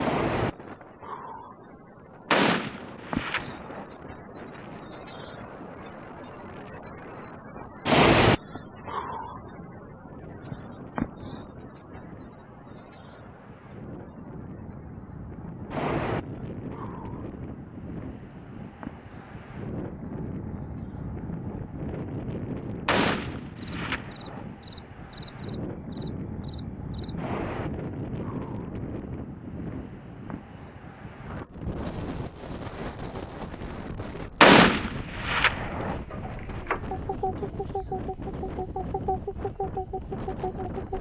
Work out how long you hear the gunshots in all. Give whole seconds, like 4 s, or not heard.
5 s.